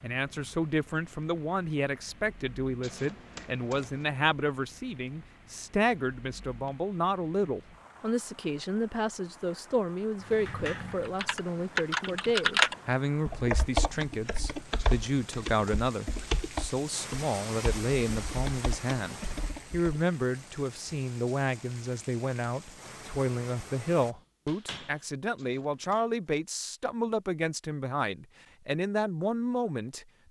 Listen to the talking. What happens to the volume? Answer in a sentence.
The volume of the talking stays about the same.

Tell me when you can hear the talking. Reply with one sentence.
You can hear the talking from 0.0 to 30.1 s.